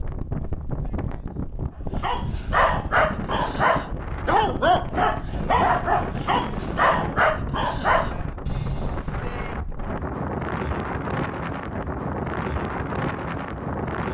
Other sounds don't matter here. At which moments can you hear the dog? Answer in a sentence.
You can hear the dog from 2.0 to 9.4 s.